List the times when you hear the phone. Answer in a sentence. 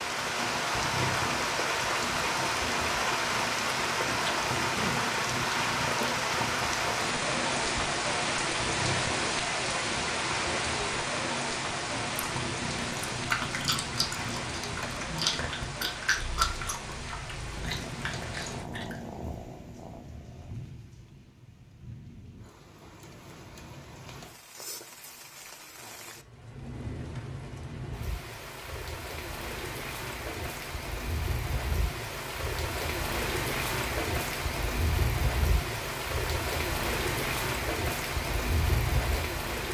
You can't hear the phone here.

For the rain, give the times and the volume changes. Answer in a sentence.
You can hear the rain from 0.0 to 39.6 s, getting quieter then louder.